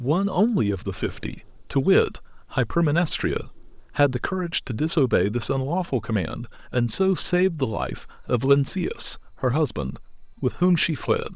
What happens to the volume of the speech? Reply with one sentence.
The volume of the speech stays about the same.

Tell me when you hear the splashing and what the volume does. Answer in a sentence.
You can't hear the splashing here.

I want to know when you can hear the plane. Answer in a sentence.
The plane can't be heard in this clip.